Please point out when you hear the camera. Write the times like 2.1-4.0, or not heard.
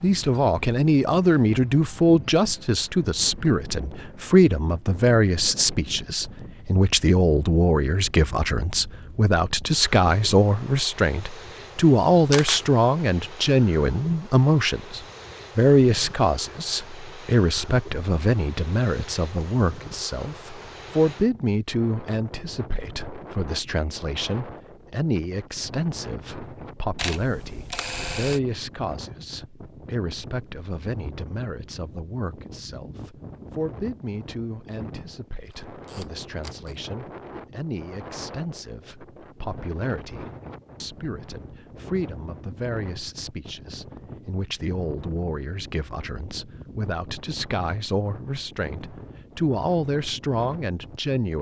12.2-12.7, 26.9-28.4, 35.5-36.8.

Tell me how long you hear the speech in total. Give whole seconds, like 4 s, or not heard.
51 s.